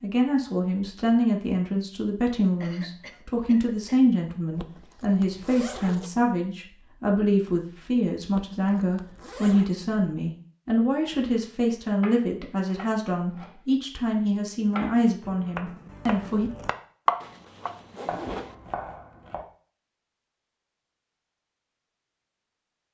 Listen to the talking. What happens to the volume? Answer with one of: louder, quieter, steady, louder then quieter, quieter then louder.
steady.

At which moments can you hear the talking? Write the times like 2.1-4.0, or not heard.
0.0-16.5.